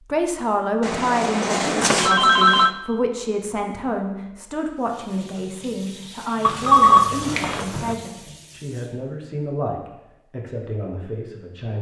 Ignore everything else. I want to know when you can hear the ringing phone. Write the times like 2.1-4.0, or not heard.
0.8-2.7, 6.4-8.0.